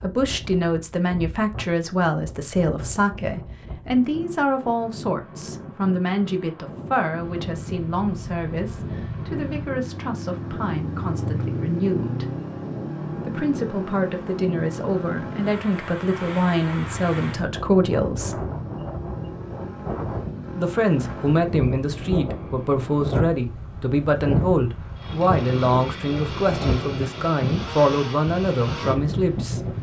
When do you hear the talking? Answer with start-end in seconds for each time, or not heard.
0.0-12.3, 13.2-18.4, 20.6-29.7.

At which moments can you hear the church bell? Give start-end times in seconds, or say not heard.
not heard.